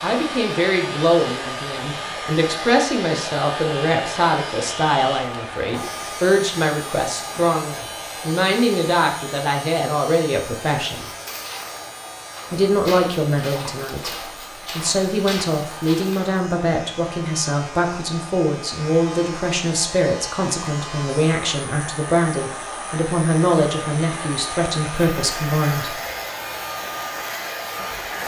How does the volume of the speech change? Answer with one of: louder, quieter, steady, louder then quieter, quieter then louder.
steady.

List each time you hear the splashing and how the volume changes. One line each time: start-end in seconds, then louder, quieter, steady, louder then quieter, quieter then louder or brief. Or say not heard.
not heard.